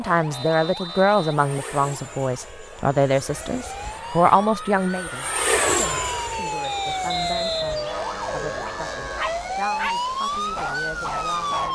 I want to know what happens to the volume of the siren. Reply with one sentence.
The loudness of the siren goes up.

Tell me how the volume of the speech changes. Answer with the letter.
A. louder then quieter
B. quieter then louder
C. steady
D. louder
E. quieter
E.